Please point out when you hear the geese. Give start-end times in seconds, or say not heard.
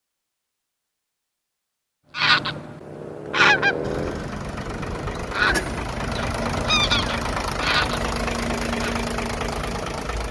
2.1-8.9.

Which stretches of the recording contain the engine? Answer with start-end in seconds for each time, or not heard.
3.8-10.2.